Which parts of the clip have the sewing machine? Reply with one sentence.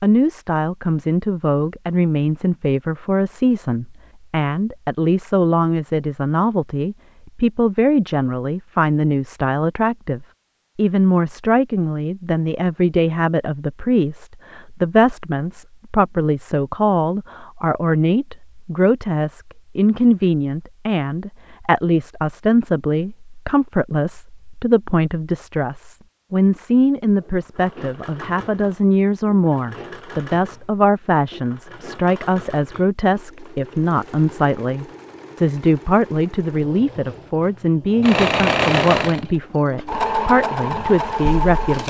You can hear the sewing machine from 27.2 to 41.8 s.